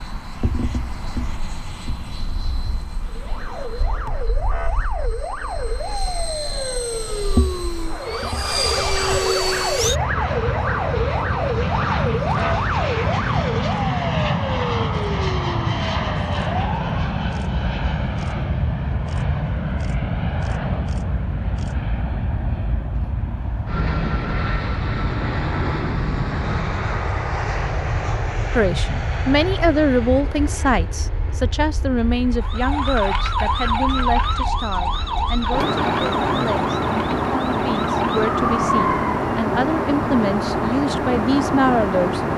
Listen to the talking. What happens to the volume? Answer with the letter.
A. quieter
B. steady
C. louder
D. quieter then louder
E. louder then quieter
D.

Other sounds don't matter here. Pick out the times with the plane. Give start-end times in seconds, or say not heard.
0.0-42.3.